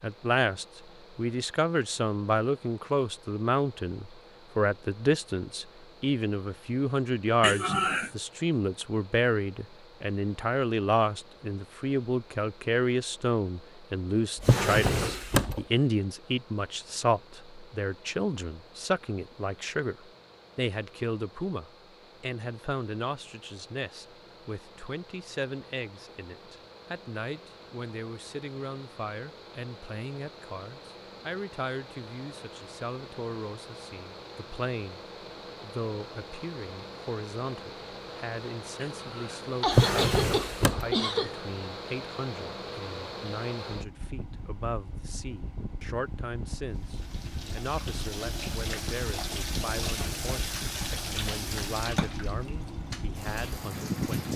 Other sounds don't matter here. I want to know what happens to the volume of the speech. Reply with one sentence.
The volume of the speech goes down.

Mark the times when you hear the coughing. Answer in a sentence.
The coughing can be heard from 7.4 to 8.1 s and from 38.8 to 41.4 s.